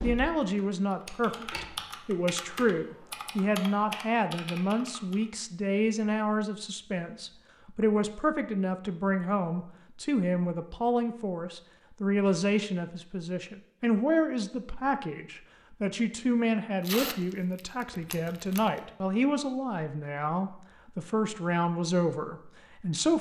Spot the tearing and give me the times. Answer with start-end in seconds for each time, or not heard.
16.8-18.8.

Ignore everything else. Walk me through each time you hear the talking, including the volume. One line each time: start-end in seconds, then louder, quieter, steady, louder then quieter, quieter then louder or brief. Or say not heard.
0.0-23.1 steady.